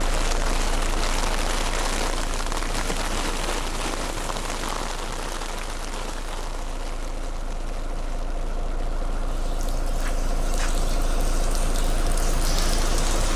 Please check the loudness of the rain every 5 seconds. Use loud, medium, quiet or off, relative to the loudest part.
loud, medium, loud.